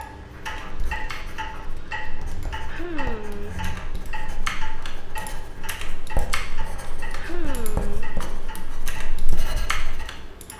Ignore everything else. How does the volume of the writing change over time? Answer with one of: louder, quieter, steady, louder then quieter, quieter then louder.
louder.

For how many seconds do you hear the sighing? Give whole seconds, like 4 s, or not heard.
2 s.